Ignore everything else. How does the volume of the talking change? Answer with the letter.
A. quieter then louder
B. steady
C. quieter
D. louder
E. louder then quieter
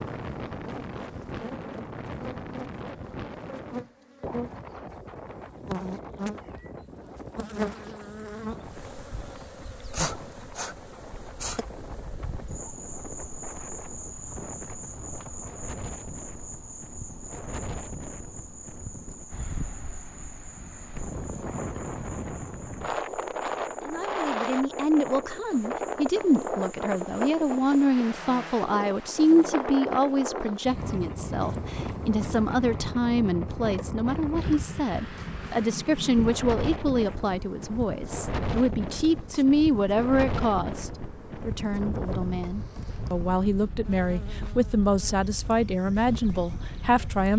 B.